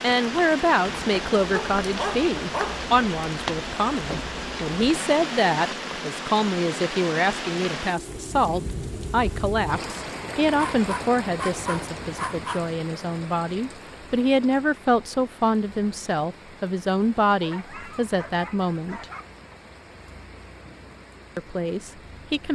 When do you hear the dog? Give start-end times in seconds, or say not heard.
1.5-2.9, 10.6-12.8, 17.4-19.6.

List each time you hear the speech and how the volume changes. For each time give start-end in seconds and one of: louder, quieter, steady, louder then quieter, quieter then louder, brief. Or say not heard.
0.0-19.1 steady
21.4-22.4 brief.